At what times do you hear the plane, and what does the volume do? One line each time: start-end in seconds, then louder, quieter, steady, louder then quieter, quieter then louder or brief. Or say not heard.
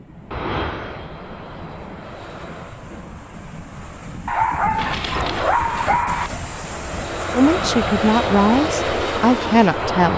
0.0-2.9 brief
4.7-10.1 quieter then louder.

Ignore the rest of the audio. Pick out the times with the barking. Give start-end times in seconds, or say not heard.
4.2-6.3.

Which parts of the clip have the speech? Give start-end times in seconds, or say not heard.
7.3-10.1.